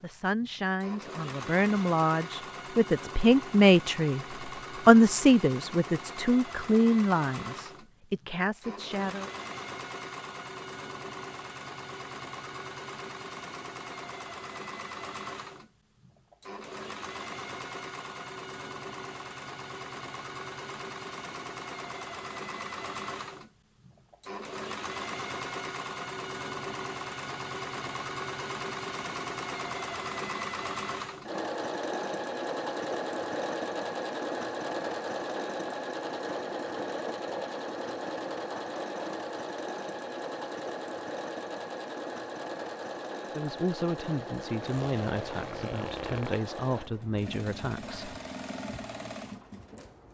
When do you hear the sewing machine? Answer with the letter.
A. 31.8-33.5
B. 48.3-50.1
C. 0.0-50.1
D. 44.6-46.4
C.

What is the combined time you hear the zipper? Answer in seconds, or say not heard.
2 s.